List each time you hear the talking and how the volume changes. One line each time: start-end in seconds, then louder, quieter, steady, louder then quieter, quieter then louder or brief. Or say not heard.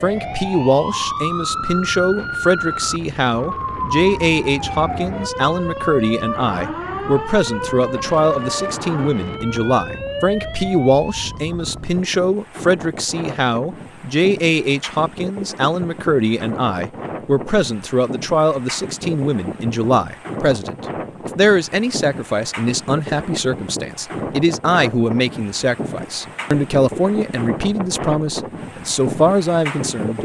0.0-30.2 steady.